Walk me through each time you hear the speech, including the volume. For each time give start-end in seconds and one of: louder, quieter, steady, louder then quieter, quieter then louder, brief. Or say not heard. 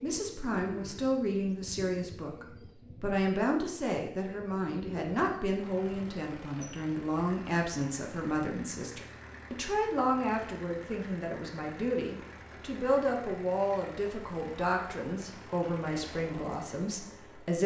0.0-17.6 steady.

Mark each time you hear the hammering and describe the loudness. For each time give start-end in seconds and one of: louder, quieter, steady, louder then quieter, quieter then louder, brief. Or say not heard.
not heard.